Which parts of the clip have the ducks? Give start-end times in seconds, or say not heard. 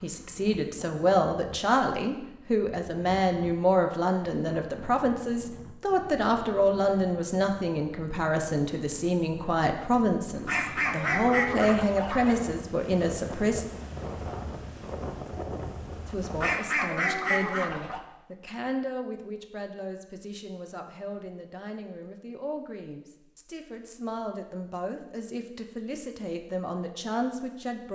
10.4-12.4, 16.4-18.0.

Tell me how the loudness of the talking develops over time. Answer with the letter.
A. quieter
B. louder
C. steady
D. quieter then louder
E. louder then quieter
A.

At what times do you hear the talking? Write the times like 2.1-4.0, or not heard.
0.0-13.7, 16.1-27.9.